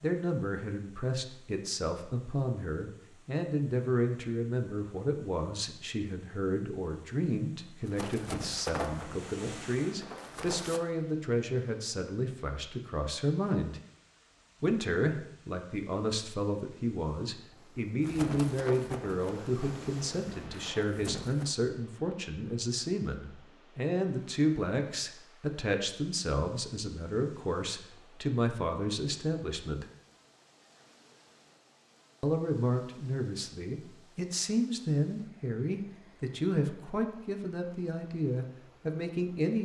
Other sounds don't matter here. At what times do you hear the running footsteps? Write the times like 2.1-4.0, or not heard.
7.8-10.8, 18.0-21.5.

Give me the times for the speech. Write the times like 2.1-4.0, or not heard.
0.0-13.8, 14.6-29.9, 32.2-39.5.